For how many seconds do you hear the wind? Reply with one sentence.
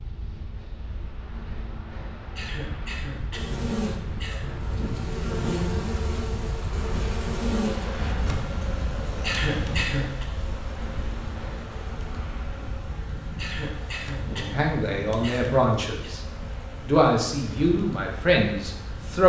You can hear the wind for 19 seconds altogether.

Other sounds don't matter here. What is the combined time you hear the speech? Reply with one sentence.
You can hear the speech for 4 seconds altogether.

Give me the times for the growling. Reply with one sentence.
You can't hear the growling here.